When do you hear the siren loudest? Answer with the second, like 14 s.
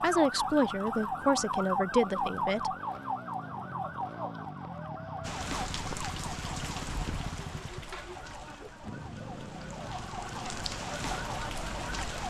2 s.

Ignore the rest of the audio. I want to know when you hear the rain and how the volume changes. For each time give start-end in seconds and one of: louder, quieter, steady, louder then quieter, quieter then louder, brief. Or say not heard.
5.2-12.2 quieter then louder.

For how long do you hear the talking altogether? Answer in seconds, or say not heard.
3 s.